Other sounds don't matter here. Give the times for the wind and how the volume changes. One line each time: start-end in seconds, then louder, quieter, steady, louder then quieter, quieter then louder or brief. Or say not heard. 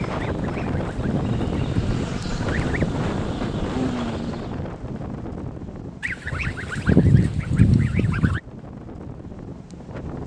0.0-10.2 quieter.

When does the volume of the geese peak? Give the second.
7 s.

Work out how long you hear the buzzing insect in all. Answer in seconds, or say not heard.
5 s.